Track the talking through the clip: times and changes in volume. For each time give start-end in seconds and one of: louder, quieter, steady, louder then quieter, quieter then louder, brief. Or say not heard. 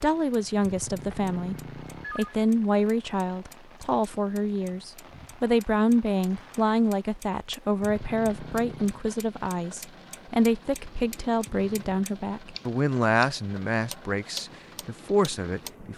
0.0-15.9 steady.